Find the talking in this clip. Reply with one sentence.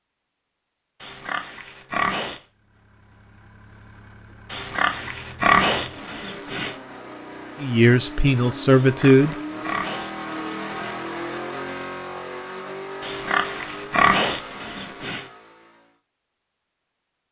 You can hear the talking from 7.6 to 9.3 s.